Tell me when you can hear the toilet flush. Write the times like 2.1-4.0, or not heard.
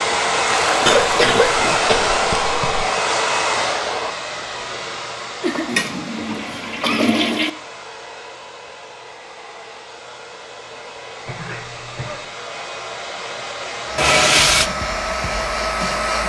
0.5-1.9, 5.7-7.5, 13.9-14.7.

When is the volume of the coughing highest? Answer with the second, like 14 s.
1 s.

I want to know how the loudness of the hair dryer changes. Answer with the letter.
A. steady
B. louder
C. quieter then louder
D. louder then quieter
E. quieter
C.